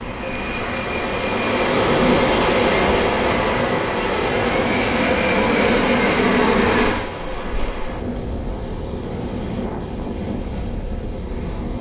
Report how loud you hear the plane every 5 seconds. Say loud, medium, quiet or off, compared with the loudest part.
medium, loud, off.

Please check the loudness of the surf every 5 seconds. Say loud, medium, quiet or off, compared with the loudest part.
loud, medium, medium.